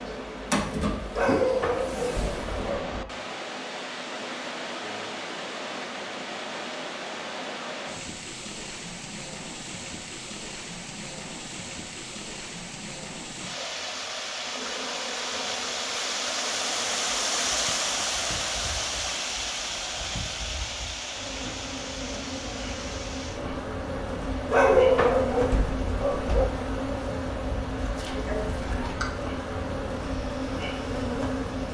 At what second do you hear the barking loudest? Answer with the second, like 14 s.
25 s.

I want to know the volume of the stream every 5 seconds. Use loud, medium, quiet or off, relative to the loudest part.
medium, medium, medium, loud, medium, quiet, quiet.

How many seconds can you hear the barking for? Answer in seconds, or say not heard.
4 s.